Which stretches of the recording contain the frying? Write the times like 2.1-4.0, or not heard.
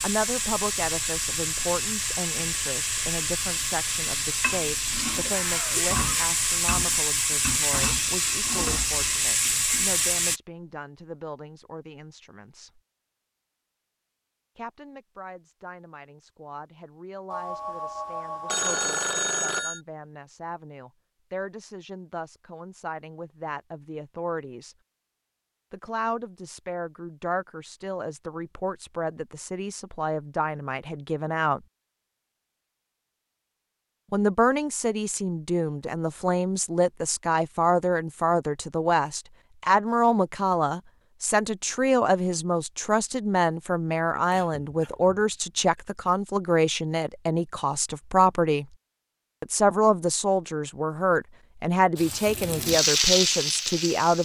0.0-10.4, 52.0-54.1.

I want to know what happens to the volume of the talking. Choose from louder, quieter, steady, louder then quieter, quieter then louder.
quieter then louder.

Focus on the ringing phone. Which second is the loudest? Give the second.
19 s.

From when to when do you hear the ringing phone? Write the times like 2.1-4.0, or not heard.
17.3-19.8.